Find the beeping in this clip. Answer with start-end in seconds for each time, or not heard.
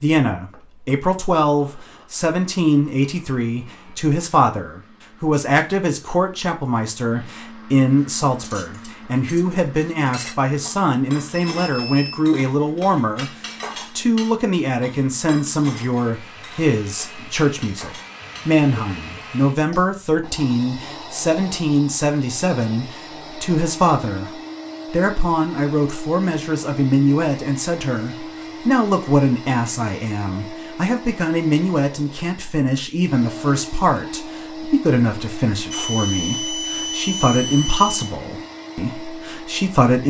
11.3-12.2, 35.7-38.1.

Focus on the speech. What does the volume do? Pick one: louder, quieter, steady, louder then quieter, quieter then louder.
steady.